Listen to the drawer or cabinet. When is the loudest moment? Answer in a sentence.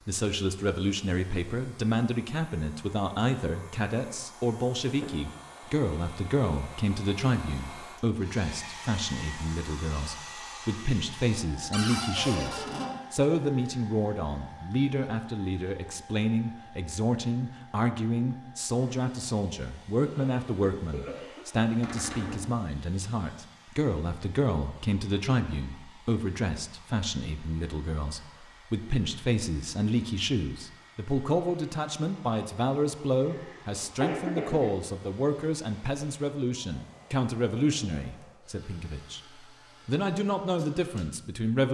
The volume of the drawer or cabinet peaks at 12 seconds.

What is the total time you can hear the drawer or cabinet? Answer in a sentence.
The drawer or cabinet can be heard for 2 seconds in total.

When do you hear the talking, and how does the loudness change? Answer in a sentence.
You can hear the talking from 0.1 to 41.6 s, at a steady volume.